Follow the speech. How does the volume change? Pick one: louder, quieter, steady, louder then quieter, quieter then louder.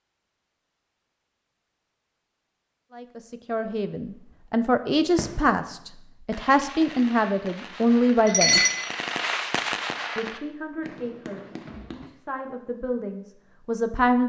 quieter then louder.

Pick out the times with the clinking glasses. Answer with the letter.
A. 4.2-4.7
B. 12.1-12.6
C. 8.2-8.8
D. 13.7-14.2
C.